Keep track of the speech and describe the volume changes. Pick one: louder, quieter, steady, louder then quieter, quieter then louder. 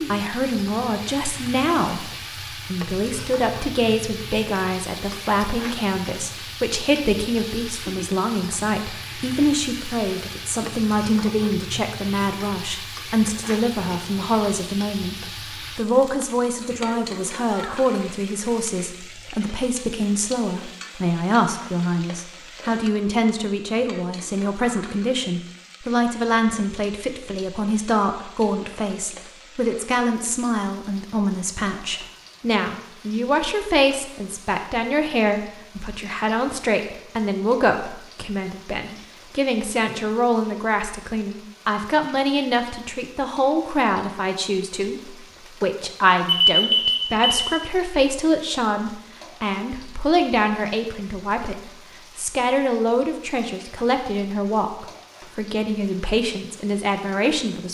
steady.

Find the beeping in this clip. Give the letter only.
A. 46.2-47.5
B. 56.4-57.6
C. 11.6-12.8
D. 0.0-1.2
A.